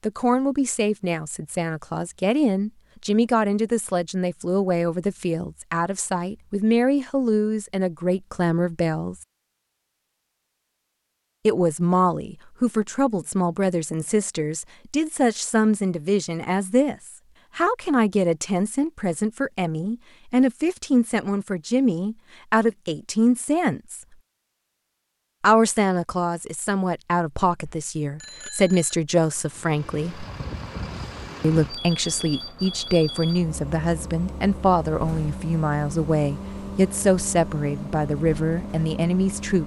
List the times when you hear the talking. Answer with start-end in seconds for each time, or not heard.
0.0-9.2, 11.4-24.0, 25.4-30.2, 31.4-39.6.